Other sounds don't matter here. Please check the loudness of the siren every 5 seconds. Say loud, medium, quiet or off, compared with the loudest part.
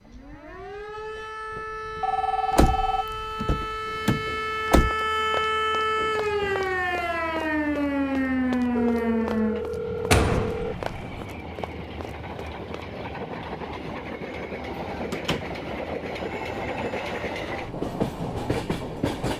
medium, loud, off, off.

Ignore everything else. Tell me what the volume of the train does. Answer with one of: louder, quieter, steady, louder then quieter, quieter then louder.
louder.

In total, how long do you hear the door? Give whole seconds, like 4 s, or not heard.
4 s.